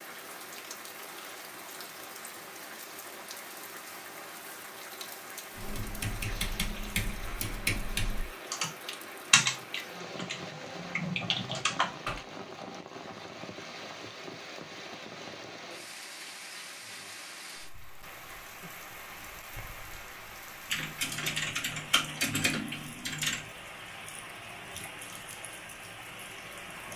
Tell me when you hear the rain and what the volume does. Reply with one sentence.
The rain can be heard from 0.0 to 26.9 s, at a steady volume.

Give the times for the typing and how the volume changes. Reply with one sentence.
The typing can be heard from 5.5 to 12.2 s, getting louder then quieter; and briefly from 20.7 to 23.4 s.